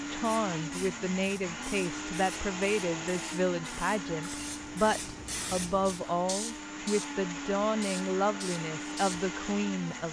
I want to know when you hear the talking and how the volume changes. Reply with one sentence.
You can hear the talking from 0.1 to 10.0 s, at a steady volume.